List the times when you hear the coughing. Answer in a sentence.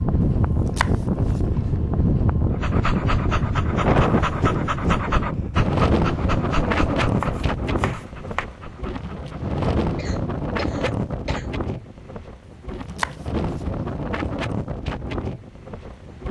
You can hear the coughing from 9.9 to 11.5 s.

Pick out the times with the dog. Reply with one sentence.
You can hear the dog from 2.5 to 9.6 s.